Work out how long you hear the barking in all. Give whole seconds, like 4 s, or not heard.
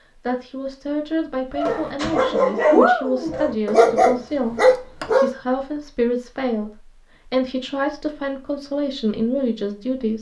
4 s.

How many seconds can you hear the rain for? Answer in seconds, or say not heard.
not heard.